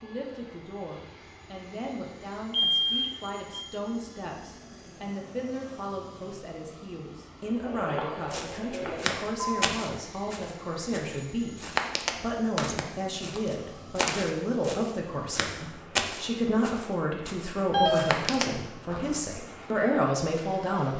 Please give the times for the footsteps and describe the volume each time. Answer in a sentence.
The footsteps can be heard from 8.3 to 19.2 s, at a steady volume.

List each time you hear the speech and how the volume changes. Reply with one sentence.
The speech can be heard from 0.0 to 20.9 s, getting louder.